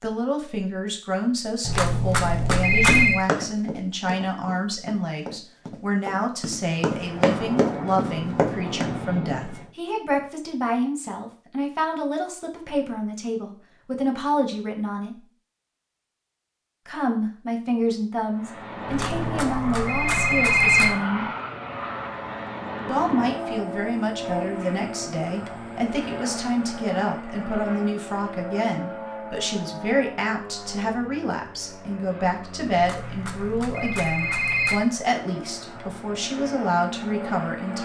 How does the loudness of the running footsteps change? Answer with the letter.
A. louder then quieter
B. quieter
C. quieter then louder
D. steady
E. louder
C.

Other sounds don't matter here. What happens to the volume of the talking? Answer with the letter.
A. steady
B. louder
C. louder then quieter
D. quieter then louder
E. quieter
A.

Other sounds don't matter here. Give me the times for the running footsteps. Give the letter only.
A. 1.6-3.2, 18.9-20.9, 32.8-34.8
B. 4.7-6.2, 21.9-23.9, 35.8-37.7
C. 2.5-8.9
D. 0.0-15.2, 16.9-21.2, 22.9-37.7
C.